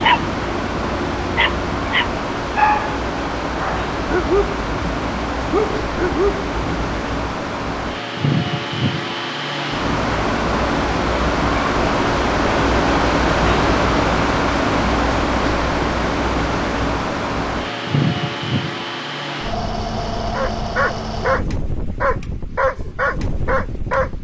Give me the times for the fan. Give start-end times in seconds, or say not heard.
0.0-24.1.